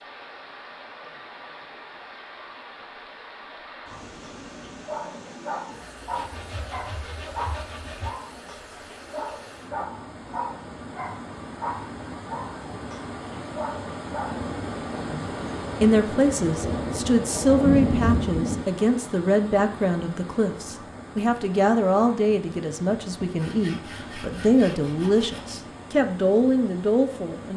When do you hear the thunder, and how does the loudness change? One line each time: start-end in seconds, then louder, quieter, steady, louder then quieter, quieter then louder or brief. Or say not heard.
14.2-18.6 louder.